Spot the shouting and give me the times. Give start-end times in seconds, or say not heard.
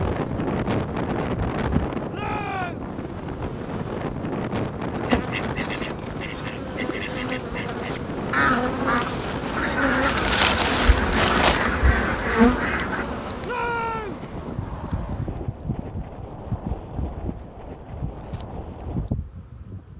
2.1-3.0, 13.4-14.2.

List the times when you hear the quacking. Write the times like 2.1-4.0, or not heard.
5.0-13.1.